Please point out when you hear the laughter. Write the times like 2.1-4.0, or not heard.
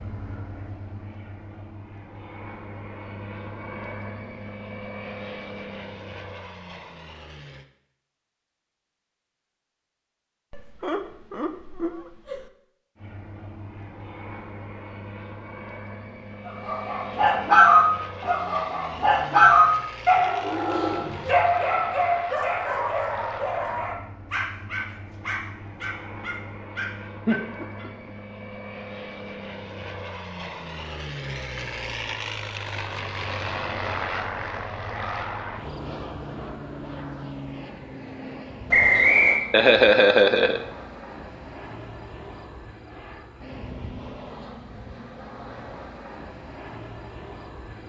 10.5-12.5, 27.2-28.1, 39.0-40.6.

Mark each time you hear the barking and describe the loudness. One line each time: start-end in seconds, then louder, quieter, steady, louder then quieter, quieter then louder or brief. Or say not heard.
16.4-27.9 quieter.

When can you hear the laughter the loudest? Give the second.
40 s.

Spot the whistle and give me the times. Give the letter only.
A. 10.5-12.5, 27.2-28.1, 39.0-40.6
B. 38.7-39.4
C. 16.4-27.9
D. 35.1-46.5
B.